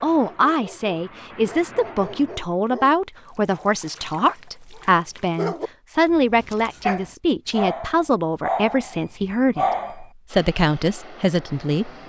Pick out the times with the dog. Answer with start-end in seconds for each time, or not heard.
0.1-10.1.